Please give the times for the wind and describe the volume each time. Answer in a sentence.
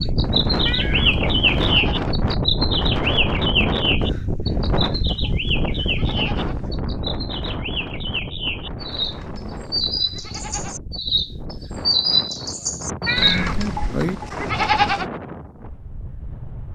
The wind can be heard from 0.0 to 16.6 s, getting quieter.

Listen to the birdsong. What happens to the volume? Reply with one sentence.
The volume of the birdsong goes down, then up.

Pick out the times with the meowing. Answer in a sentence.
You can hear the meowing from 0.7 to 1.8 s and from 13.1 to 14.2 s.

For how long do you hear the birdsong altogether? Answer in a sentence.
You can hear the birdsong for 14 seconds altogether.